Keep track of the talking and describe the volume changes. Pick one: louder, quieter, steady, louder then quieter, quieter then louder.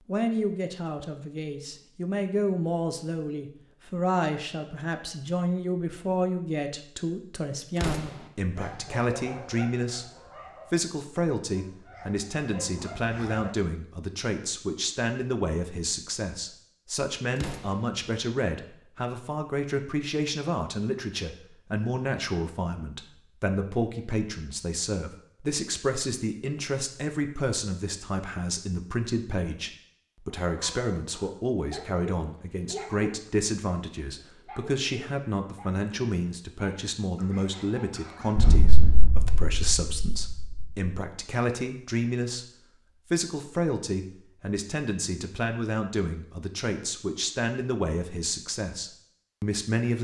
steady.